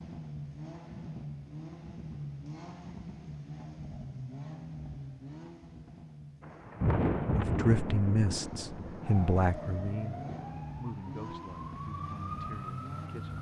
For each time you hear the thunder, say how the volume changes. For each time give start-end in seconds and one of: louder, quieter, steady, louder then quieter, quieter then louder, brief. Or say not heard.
6.4-10.6 quieter.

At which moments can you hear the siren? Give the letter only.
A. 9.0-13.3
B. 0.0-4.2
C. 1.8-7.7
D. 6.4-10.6
A.